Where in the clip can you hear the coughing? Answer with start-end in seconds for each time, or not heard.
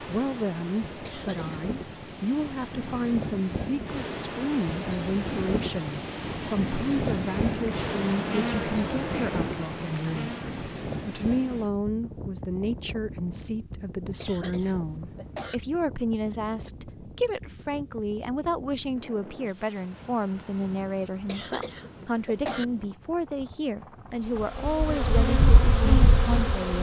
1.1-1.6, 14.2-15.6, 21.2-22.6.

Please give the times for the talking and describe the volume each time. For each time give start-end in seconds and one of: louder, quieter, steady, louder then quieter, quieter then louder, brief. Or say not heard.
0.0-26.7 steady.